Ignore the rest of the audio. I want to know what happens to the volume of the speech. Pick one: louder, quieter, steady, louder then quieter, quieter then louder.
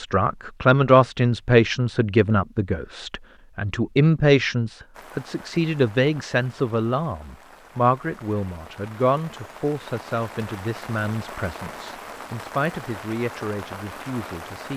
quieter.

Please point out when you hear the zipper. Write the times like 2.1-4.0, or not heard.
not heard.